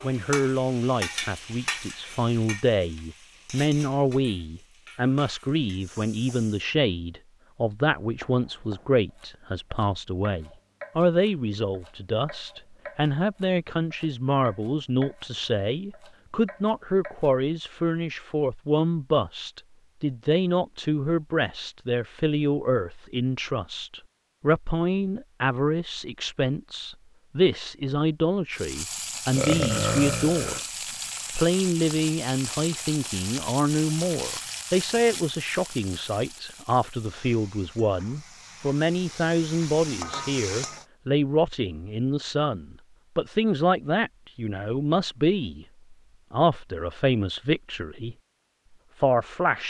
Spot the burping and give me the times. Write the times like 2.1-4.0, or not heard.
29.3-30.6.